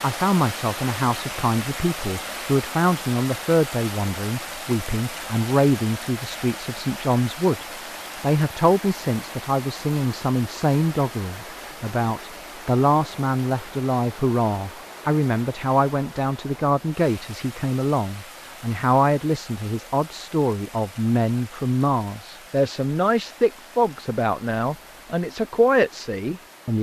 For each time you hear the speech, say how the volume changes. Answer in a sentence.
The speech can be heard from 0.0 to 26.7 s, at a steady volume.